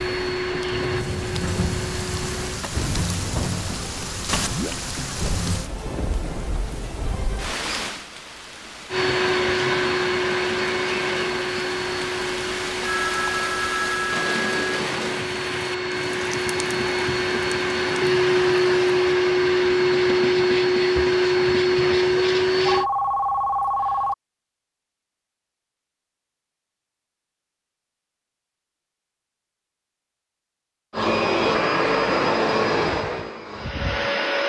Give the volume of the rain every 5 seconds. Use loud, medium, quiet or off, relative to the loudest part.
loud, loud, loud, medium, off, off, off.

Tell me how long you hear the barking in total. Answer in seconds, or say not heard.
not heard.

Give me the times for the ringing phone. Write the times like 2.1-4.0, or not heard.
12.8-14.6, 22.6-24.1.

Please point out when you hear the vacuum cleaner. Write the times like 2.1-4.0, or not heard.
0.0-2.6, 8.9-22.9, 30.9-34.4.